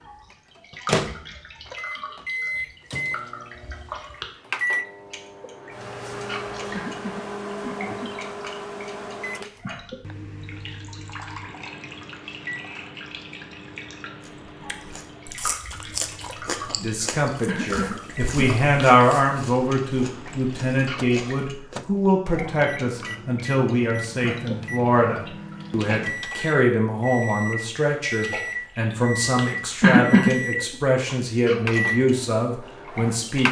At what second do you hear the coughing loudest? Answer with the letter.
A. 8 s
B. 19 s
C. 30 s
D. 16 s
C.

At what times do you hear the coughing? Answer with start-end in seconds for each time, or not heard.
6.7-8.1, 17.4-18.6, 29.8-30.8.